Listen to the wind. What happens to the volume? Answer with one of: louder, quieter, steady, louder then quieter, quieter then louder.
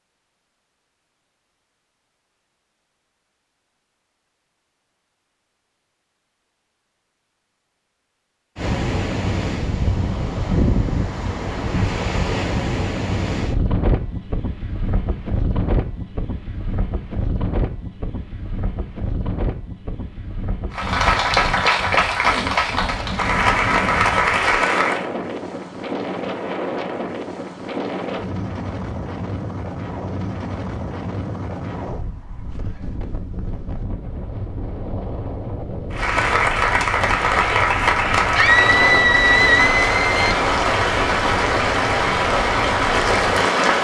quieter.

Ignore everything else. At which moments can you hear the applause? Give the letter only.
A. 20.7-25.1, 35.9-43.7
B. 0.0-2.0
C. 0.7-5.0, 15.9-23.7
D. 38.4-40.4
A.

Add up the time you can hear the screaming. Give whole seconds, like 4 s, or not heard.
2 s.